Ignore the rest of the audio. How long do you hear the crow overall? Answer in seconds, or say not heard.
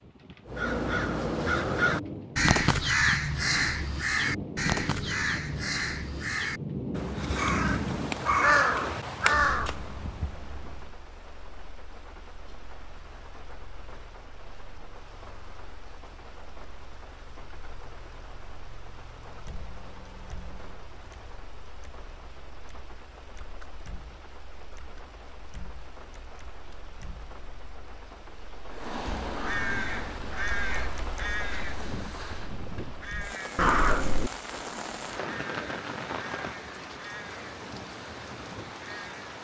21 s.